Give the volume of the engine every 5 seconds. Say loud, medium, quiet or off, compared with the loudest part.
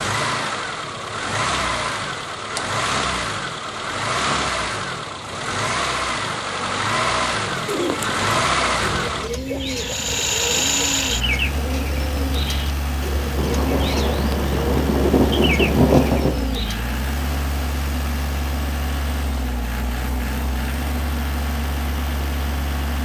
loud, loud, loud, medium, medium.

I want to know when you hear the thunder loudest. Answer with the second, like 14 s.
16 s.